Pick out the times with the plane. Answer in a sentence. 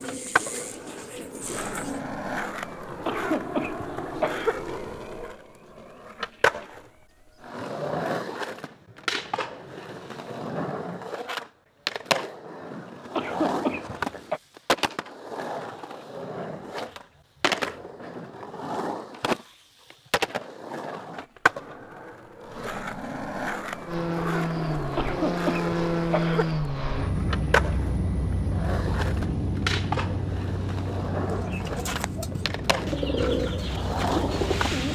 The plane can be heard from 23.9 to 34.9 s.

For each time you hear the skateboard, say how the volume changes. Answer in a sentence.
The skateboard can be heard from 0.0 to 34.8 s, at a steady volume.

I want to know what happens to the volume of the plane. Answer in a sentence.
The volume of the plane goes down.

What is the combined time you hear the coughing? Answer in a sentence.
The coughing can be heard for 4 seconds in total.